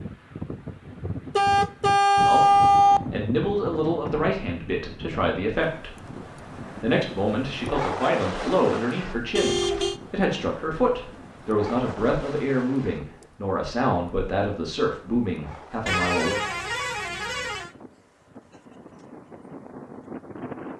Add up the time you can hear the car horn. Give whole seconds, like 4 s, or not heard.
4 s.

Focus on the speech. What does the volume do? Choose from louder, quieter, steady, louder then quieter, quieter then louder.
steady.